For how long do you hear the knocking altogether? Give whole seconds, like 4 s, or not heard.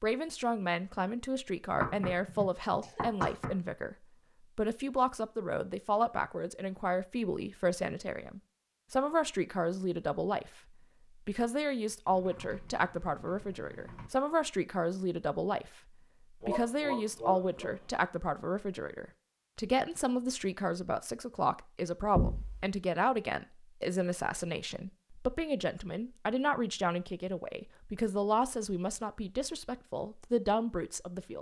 2 s.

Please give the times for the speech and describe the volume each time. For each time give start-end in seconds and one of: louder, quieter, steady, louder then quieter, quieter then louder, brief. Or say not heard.
0.0-31.3 steady.